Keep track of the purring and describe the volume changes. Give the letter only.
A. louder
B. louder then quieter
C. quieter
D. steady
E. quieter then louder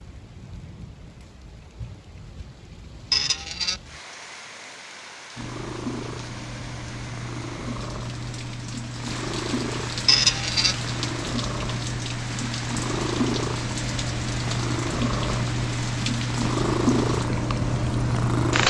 A.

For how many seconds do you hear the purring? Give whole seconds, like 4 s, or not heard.
13 s.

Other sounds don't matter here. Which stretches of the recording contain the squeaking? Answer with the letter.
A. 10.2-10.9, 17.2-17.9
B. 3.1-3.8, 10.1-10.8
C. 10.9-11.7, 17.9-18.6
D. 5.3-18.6
B.